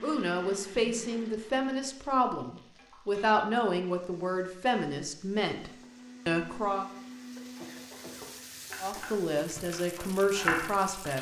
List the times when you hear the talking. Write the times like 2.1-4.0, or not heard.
0.0-6.8, 8.8-11.1.